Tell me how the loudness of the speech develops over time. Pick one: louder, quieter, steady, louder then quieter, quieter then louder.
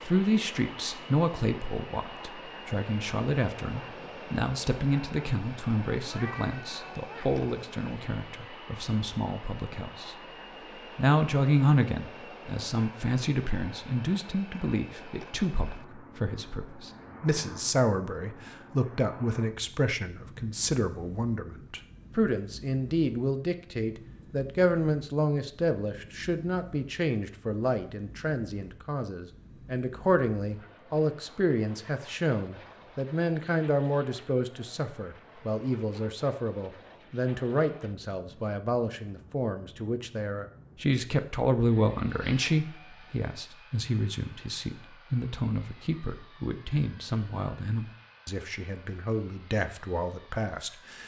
steady.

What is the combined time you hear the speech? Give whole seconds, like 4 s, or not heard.
50 s.